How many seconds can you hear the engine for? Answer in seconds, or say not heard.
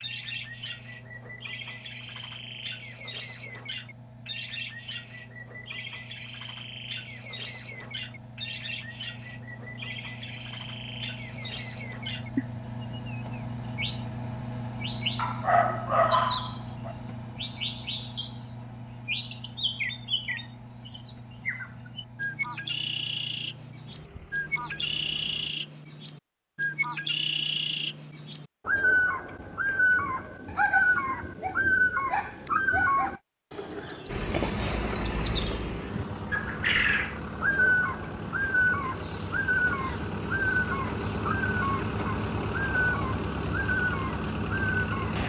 37 s.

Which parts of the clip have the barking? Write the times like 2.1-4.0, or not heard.
15.2-16.9, 30.4-33.2.